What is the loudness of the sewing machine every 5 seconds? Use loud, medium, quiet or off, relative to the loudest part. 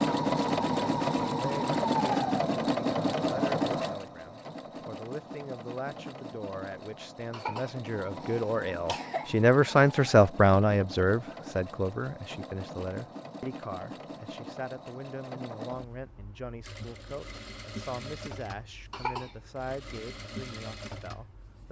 loud, quiet, quiet, quiet, quiet.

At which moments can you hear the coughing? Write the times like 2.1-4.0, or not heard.
7.3-9.3, 18.9-19.4.